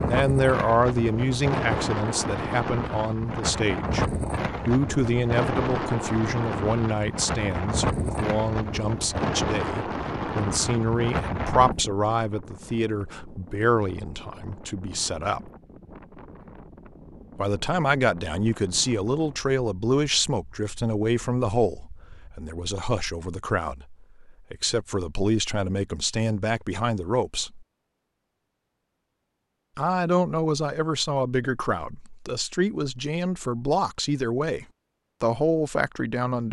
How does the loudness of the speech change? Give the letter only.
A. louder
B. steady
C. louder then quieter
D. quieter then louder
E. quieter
B.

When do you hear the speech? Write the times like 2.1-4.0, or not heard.
0.0-15.5, 17.4-27.6, 29.8-36.4.